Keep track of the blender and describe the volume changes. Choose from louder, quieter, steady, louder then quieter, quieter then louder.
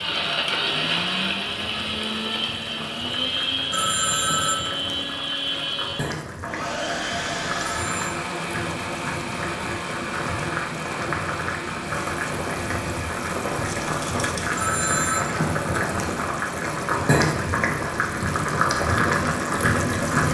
quieter.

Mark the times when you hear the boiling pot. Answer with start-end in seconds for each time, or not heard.
0.0-20.3.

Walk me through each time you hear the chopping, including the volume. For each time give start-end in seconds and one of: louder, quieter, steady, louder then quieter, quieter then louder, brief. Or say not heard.
not heard.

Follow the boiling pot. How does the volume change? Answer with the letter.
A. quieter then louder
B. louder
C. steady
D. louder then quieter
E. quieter
B.